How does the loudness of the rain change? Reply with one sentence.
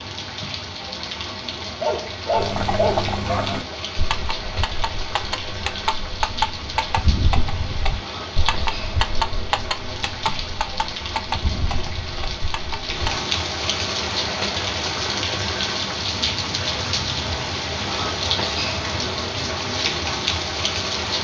The volume of the rain goes up.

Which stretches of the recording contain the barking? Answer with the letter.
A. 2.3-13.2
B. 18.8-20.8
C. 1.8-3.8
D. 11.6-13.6
C.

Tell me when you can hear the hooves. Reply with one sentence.
You can hear the hooves from 2.3 to 13.2 s.